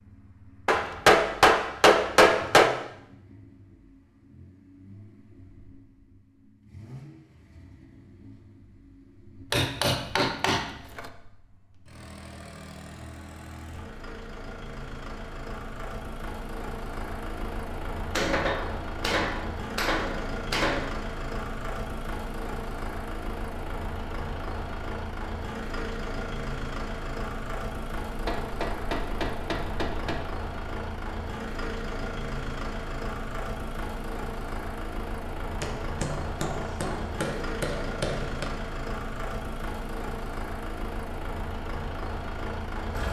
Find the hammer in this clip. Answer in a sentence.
The hammer can be heard from 0.7 to 2.7 s, from 9.5 to 11.1 s, from 18.1 to 20.9 s, from 28.1 to 30.2 s and from 35.6 to 38.5 s.